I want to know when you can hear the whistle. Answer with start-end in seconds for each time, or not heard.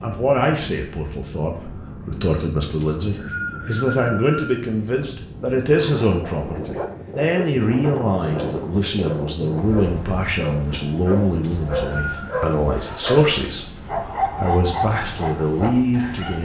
2.8-4.6, 11.4-12.2.